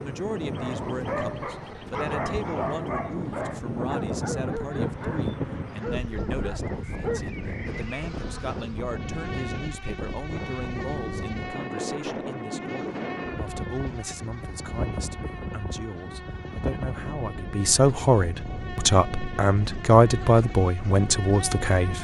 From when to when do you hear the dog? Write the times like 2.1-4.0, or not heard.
0.6-7.2.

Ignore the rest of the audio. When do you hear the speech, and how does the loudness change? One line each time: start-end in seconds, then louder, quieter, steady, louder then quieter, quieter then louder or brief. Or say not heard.
0.0-21.9 louder.